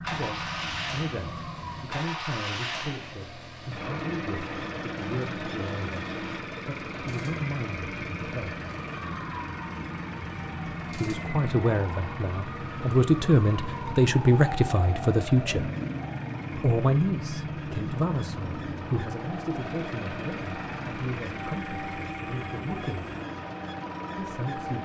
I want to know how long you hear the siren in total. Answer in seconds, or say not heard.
20 s.